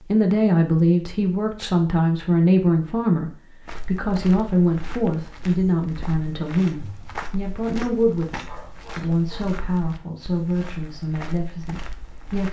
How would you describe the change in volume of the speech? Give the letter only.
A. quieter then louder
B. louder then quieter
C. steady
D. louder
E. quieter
E.